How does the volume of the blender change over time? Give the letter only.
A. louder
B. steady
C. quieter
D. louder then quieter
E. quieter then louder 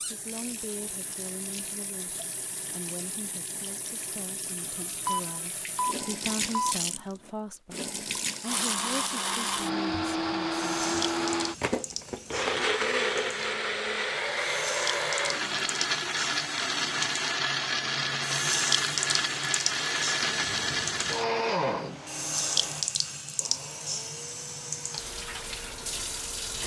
C.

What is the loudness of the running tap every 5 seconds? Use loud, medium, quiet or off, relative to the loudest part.
medium, loud, medium, loud, loud, loud.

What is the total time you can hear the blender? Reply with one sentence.
The blender can be heard for 18 seconds in total.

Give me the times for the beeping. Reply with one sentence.
The beeping can be heard from 5.0 to 6.8 s.